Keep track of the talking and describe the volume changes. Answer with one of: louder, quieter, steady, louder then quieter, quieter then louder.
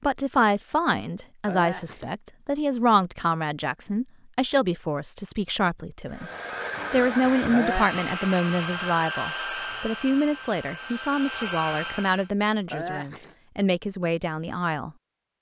steady.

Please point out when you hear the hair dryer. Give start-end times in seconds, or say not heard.
6.0-12.3.